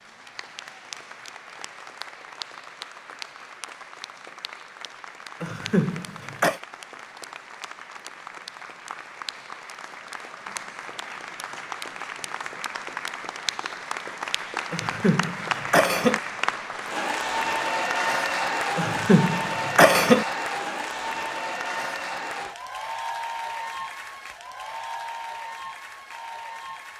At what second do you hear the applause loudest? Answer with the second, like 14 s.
18 s.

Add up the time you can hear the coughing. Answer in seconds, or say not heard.
4 s.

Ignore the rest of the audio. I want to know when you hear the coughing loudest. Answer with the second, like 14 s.
20 s.